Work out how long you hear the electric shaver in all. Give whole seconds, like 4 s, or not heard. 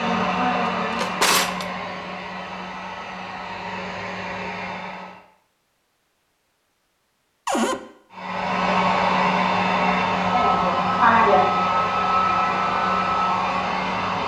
not heard.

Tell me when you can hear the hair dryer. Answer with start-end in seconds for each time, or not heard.
0.0-5.2, 8.1-14.2.